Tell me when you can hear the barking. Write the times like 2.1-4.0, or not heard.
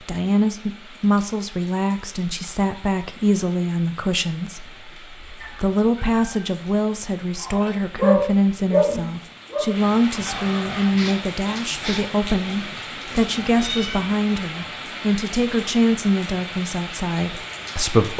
7.4-12.8.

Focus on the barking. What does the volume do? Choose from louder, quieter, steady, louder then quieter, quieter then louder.
quieter.